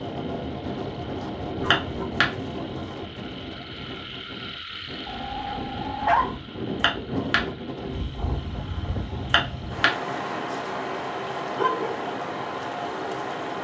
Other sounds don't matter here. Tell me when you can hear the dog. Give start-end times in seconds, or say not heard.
1.6-2.0, 5.0-6.4, 11.6-12.1.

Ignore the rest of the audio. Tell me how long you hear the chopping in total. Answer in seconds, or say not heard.
2 s.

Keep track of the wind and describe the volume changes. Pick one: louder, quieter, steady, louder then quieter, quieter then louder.
quieter then louder.